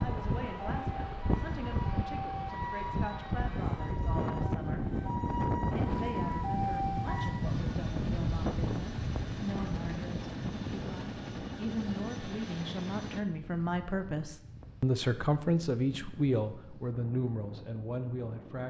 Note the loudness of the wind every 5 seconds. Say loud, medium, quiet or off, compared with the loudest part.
loud, loud, medium, quiet.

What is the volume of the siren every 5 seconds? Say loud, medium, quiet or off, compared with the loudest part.
medium, loud, off, off.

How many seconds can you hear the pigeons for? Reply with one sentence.
You can't hear the pigeons here.